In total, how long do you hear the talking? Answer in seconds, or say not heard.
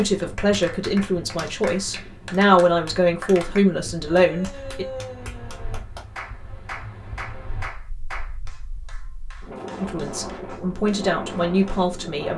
7 s.